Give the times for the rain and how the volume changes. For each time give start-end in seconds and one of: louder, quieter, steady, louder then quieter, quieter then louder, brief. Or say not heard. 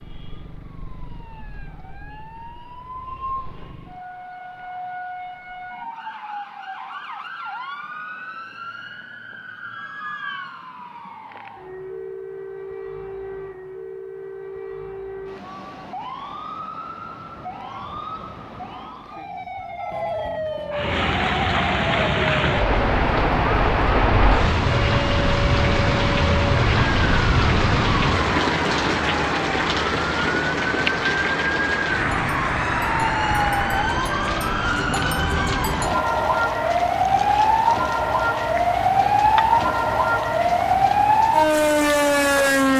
20.7-42.7 quieter.